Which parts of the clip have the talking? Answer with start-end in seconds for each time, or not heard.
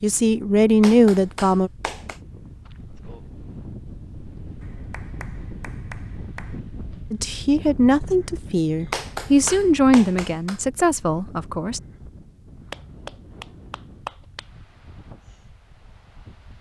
0.0-1.7, 7.1-11.8.